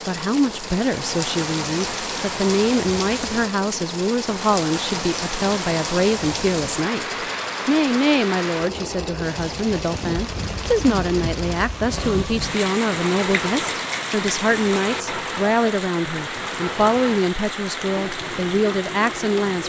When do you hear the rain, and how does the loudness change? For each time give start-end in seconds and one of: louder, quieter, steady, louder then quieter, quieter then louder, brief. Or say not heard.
0.0-19.6 steady.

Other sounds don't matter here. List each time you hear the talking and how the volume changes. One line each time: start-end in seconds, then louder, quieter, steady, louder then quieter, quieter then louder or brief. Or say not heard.
0.1-19.6 steady.